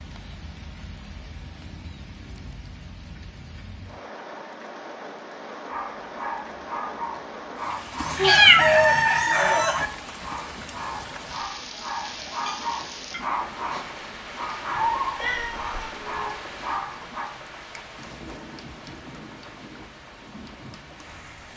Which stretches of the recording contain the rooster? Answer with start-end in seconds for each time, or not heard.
8.0-9.9.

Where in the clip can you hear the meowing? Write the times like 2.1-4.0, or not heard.
8.2-9.0, 14.7-16.4.